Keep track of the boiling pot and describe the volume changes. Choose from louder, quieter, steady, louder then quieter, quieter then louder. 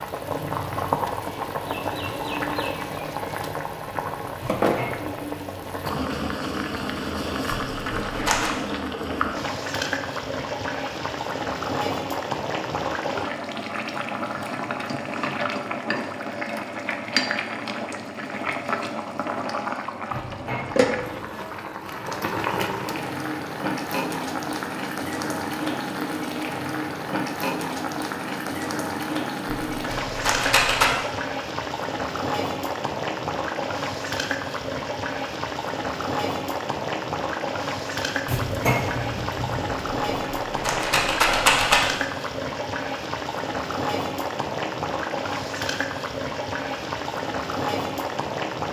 steady.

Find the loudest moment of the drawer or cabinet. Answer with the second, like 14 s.
39 s.